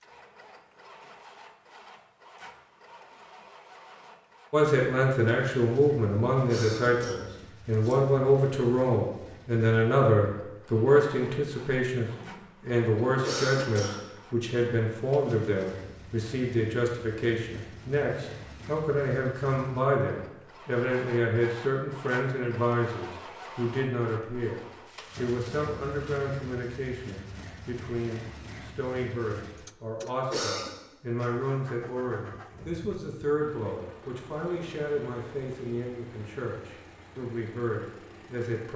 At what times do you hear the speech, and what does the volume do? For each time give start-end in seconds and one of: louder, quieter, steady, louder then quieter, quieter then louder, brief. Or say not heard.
4.5-38.7 quieter.